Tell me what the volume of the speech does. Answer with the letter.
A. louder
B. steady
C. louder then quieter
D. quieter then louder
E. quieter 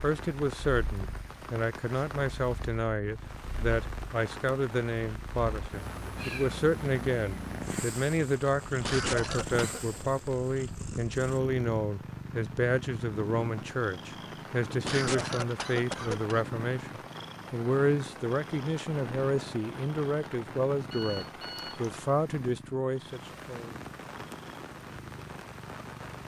B.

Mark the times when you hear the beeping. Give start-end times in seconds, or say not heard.
20.9-21.9.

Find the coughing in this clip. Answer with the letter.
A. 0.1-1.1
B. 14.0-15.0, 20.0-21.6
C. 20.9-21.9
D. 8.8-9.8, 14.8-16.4
D.